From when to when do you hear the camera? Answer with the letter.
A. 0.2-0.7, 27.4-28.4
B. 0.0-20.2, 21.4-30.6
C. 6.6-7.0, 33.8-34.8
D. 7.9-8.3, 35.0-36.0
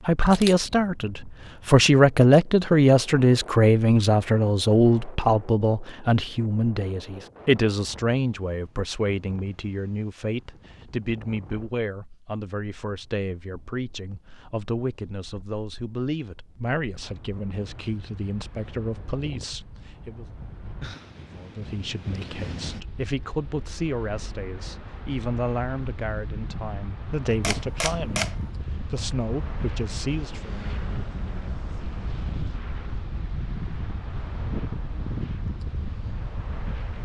A.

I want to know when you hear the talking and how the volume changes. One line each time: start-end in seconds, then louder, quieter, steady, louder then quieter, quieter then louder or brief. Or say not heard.
0.0-20.2 quieter
21.4-30.6 steady.